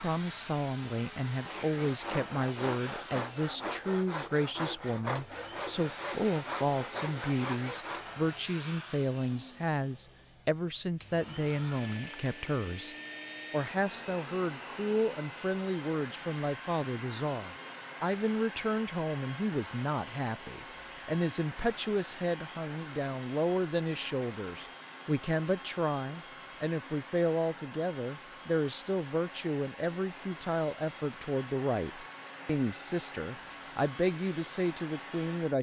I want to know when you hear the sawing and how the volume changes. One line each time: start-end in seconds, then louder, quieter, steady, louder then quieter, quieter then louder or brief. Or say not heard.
1.4-8.2 steady.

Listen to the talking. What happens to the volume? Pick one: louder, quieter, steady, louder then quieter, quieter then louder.
steady.